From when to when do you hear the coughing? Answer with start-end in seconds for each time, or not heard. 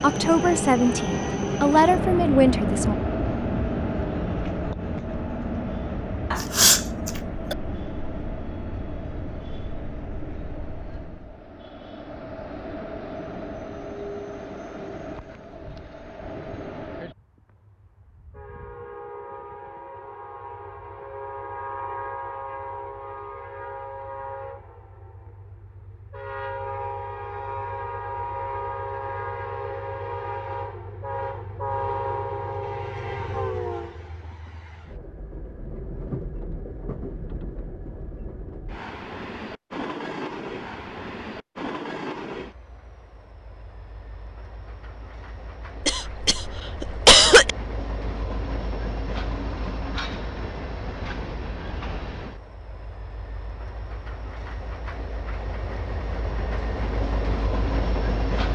6.3-7.5, 45.9-47.5.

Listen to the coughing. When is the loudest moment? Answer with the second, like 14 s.
47 s.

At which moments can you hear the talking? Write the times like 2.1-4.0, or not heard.
0.0-3.0.